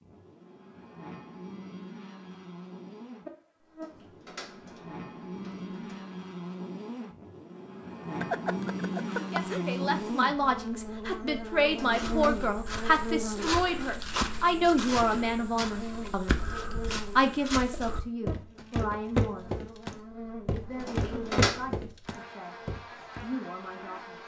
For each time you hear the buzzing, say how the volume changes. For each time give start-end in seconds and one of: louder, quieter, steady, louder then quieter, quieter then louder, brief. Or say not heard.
0.0-24.2 louder then quieter.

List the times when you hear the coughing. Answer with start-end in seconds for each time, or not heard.
8.2-9.6.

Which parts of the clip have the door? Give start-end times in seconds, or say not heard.
3.6-6.0, 11.6-12.3, 20.6-21.6.